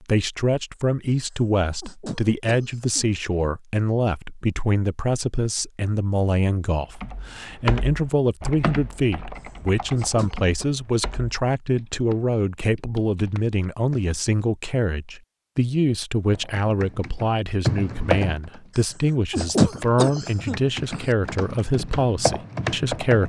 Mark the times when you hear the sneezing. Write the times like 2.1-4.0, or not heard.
1.3-3.1, 9.4-10.7, 18.8-21.1.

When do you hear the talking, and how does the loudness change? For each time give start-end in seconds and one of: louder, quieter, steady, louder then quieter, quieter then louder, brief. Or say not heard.
0.0-23.2 steady.